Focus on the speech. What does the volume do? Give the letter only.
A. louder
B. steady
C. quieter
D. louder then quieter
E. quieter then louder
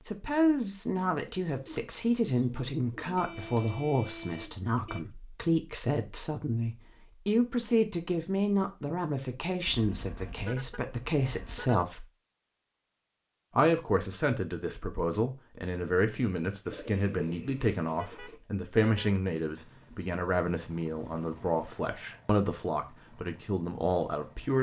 B.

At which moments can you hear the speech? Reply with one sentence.
The speech can be heard from 0.1 to 12.1 s and from 13.6 to 24.5 s.